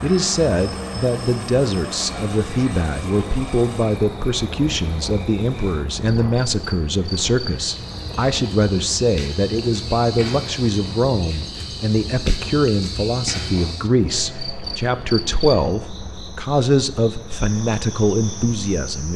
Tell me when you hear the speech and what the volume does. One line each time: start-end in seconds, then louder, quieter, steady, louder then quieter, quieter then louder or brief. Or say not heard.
0.0-19.1 steady.